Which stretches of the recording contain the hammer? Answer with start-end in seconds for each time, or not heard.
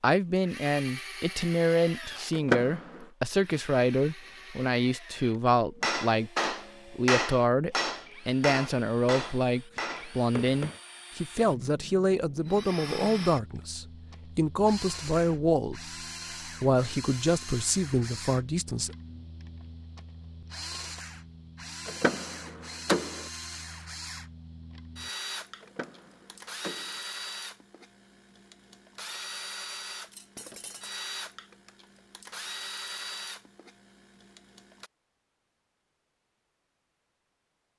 5.8-10.8.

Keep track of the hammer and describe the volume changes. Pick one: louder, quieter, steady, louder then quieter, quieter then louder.
quieter.